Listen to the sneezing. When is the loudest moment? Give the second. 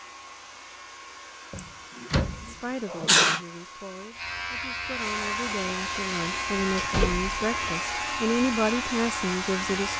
3 s.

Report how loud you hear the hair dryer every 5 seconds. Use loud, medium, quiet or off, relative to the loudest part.
quiet, loud.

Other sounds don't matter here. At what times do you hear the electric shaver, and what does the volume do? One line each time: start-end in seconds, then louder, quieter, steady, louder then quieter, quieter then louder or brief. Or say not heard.
0.0-9.9 louder.